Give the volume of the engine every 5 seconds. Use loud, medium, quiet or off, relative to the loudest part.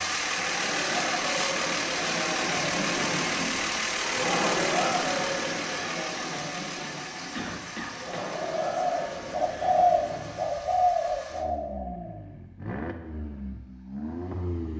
loud, medium, medium.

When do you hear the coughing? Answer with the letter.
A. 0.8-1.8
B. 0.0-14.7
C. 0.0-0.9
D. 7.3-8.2
D.